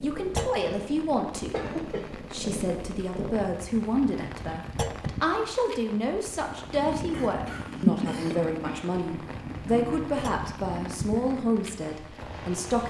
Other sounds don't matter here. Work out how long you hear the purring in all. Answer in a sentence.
You can hear the purring for 10 seconds altogether.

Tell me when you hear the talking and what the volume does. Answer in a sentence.
The talking can be heard from 0.0 to 12.8 s, at a steady volume.